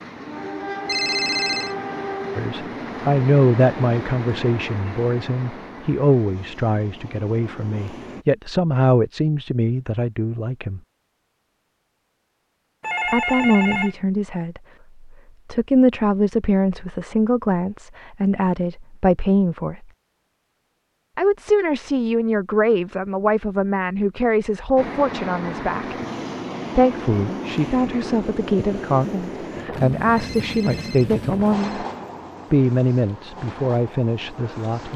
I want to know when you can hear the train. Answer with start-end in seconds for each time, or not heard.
0.0-8.2, 24.8-34.9.